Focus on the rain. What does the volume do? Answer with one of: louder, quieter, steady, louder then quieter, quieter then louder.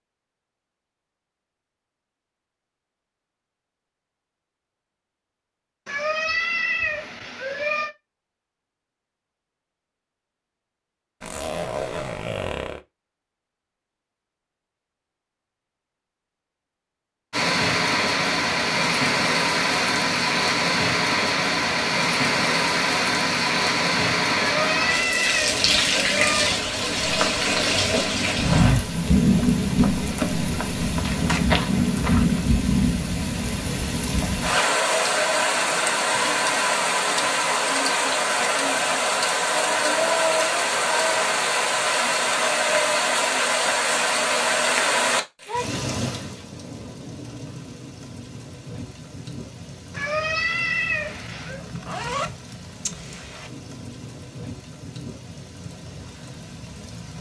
quieter.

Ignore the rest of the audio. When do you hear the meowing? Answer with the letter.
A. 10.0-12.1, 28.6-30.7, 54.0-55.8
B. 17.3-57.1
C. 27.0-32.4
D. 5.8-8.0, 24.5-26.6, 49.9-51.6
D.